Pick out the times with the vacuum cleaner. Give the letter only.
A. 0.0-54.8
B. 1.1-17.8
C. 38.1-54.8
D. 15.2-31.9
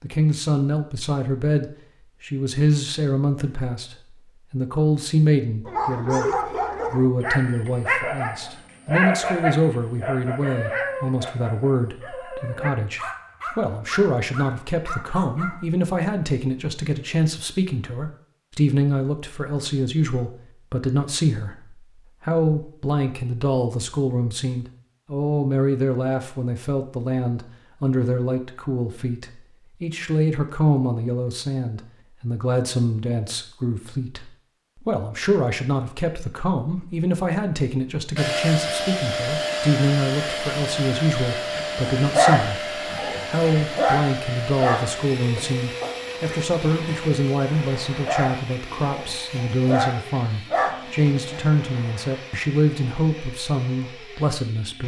C.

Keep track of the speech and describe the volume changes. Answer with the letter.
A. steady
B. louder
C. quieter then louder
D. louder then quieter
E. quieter
A.